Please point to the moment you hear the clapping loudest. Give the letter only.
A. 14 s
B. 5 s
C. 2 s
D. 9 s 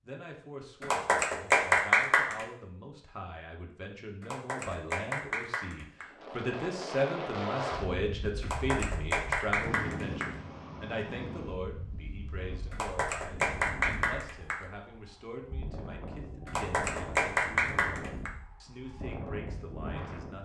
C.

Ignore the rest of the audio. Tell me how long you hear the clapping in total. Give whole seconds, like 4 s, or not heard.
9 s.